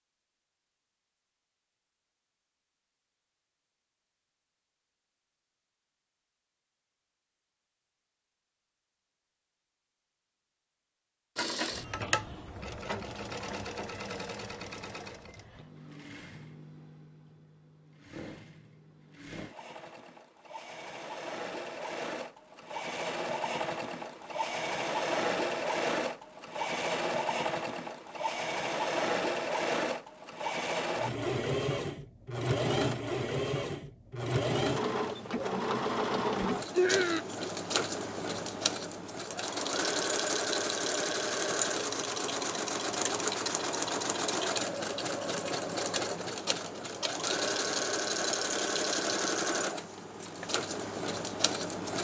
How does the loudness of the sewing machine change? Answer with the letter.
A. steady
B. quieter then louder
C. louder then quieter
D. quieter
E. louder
E.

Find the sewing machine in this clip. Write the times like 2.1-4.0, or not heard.
11.3-51.9.